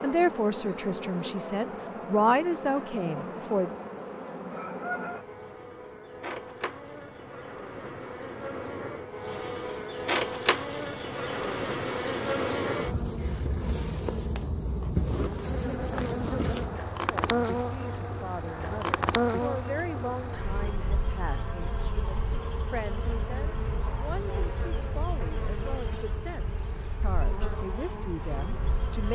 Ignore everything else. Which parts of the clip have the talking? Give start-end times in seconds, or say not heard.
0.0-3.8, 17.1-29.1.